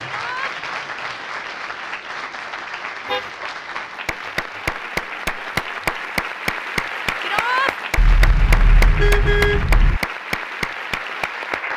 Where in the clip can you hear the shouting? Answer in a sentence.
You can hear the shouting from 0.0 to 0.6 s and from 7.2 to 7.8 s.